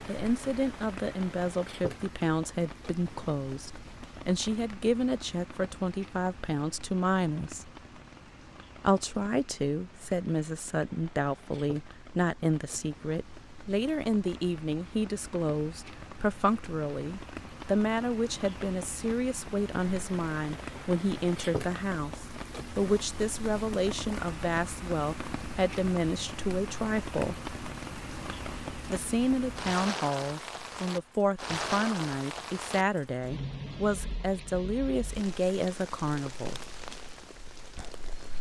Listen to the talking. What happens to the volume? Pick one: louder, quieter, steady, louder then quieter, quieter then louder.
steady.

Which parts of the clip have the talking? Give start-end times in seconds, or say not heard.
0.1-7.7, 8.8-27.4, 28.9-36.6.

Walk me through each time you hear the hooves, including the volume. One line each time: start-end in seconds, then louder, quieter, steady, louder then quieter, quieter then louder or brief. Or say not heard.
not heard.